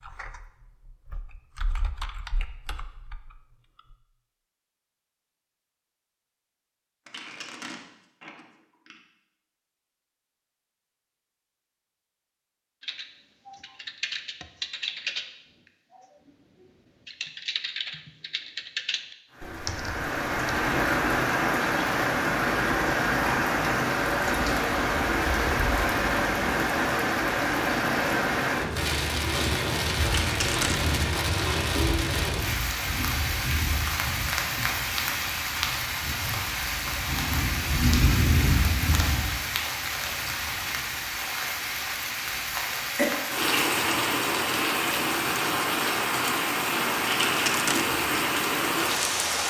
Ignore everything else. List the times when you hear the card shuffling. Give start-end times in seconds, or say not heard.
7.0-9.0, 30.1-30.9, 47.1-47.9.